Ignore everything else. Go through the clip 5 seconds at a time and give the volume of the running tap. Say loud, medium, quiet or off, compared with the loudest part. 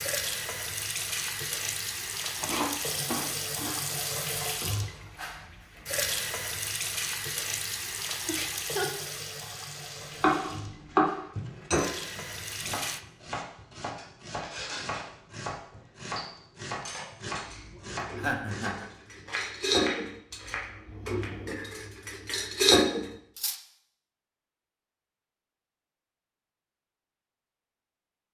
loud, loud, medium, off, off, off.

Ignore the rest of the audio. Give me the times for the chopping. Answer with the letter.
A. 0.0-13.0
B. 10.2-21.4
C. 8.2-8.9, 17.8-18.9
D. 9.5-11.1
B.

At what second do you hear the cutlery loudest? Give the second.
23 s.